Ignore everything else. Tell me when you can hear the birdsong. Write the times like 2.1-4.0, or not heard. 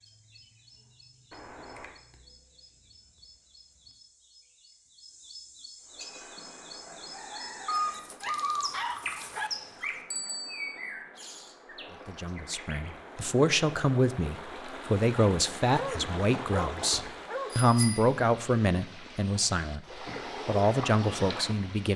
0.0-12.9.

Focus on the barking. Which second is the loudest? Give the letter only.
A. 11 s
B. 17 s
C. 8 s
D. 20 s
C.